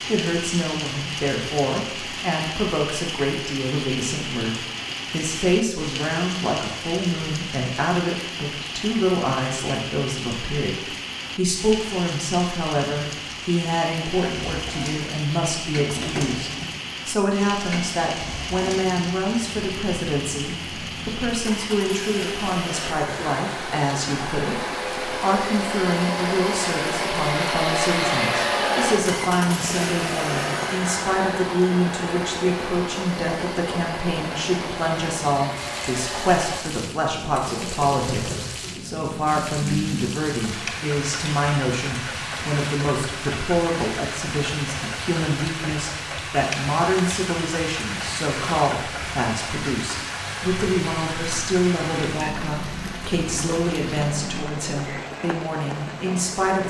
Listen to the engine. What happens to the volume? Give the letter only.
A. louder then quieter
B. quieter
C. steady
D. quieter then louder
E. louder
A.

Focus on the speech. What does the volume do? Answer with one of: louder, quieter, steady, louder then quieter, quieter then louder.
steady.